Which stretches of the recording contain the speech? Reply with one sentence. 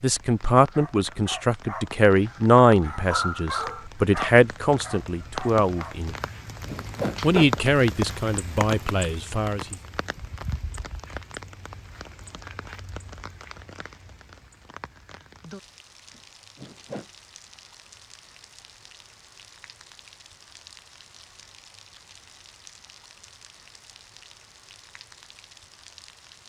You can hear the speech from 0.0 to 6.2 s and from 7.2 to 9.8 s.